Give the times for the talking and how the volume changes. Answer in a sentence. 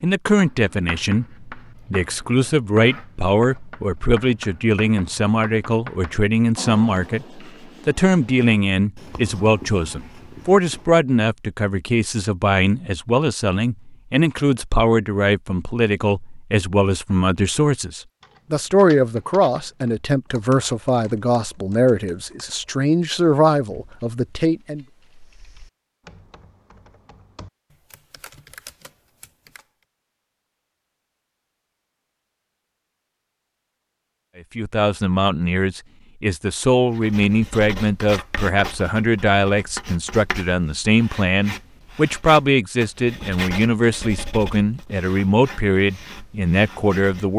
You can hear the talking from 0.0 to 24.9 s, at a steady volume; and from 34.5 to 47.3 s, at a steady volume.